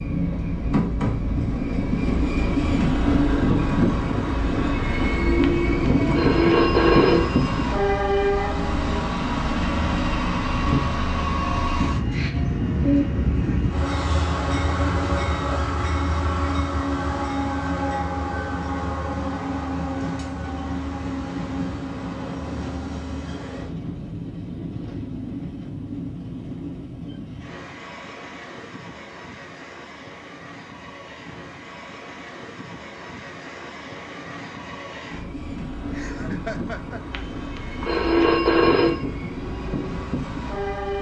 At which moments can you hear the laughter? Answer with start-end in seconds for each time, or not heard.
35.9-37.2.